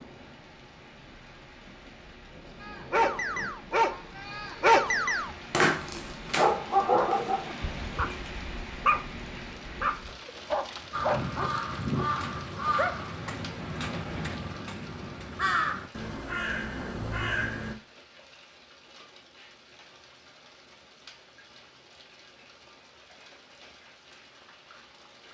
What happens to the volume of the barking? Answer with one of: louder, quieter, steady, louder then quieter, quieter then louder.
quieter.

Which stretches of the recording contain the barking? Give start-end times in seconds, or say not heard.
2.6-12.9.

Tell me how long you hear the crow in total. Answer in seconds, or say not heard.
7 s.